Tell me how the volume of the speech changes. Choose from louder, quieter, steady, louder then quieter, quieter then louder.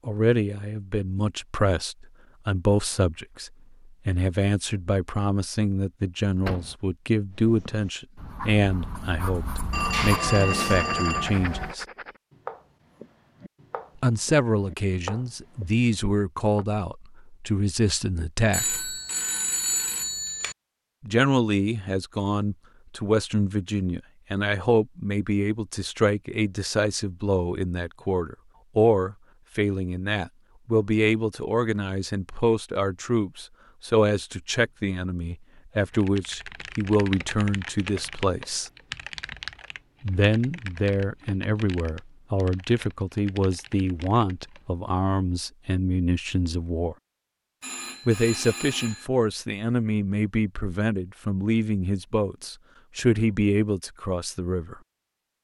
steady.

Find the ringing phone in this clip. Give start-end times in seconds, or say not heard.
9.7-11.8, 18.5-20.6, 47.6-49.1.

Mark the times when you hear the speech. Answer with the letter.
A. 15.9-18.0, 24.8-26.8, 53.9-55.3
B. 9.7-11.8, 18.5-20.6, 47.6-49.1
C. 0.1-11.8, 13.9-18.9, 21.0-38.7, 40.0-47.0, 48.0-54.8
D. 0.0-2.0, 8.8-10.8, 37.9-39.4
C.